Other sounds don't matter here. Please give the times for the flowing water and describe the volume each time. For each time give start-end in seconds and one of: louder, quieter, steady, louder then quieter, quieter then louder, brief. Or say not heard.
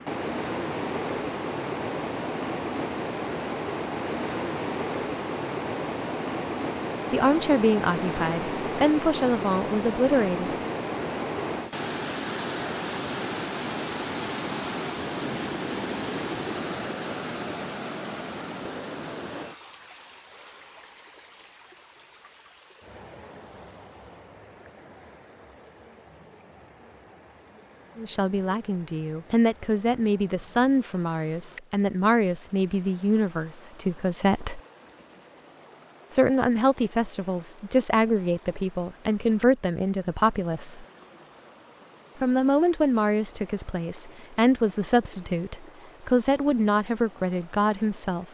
0.0-48.2 quieter.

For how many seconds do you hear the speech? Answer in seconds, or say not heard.
21 s.